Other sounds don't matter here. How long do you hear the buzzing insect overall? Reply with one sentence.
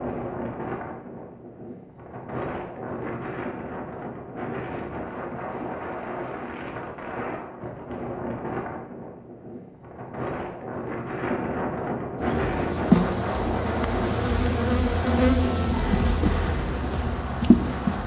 The buzzing insect can be heard for 6 seconds in total.